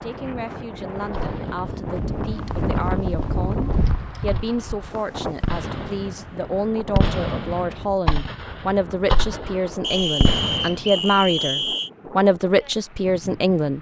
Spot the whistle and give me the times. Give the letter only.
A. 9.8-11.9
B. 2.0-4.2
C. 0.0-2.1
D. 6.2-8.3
A.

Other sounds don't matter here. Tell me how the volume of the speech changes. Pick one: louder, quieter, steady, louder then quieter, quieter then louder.
louder.